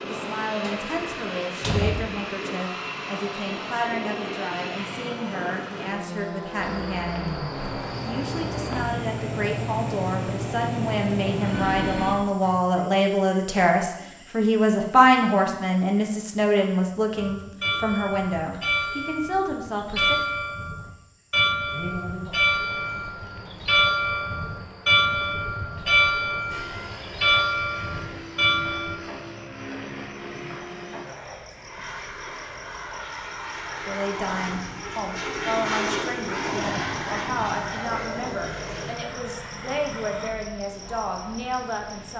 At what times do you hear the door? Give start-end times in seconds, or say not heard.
0.6-1.9.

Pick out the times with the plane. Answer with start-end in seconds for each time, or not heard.
0.0-12.2, 26.5-40.3.